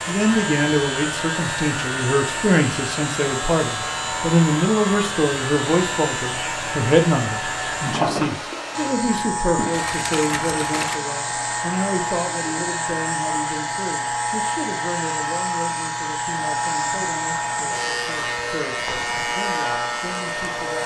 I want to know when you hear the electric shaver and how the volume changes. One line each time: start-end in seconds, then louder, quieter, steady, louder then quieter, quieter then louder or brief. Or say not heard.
0.0-20.8 steady.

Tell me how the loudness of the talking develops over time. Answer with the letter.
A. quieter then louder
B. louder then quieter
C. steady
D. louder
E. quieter
E.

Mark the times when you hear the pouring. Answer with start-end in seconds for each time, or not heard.
9.7-11.0.